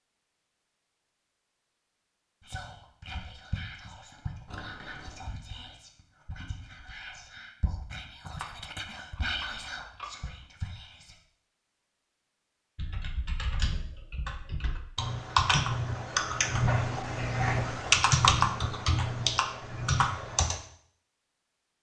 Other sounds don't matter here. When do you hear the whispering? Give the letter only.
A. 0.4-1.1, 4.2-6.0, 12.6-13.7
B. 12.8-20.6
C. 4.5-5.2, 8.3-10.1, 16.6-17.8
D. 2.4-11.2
D.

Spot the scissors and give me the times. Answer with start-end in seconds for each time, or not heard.
4.5-5.2, 8.3-10.1, 16.6-17.8.